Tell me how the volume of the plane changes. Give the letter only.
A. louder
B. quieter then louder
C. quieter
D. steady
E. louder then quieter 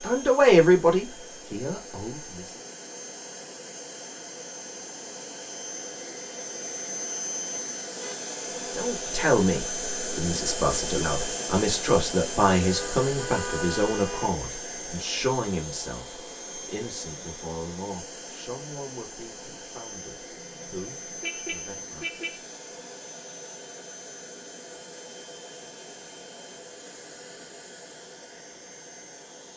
E.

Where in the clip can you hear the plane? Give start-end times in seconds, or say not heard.
0.0-29.5.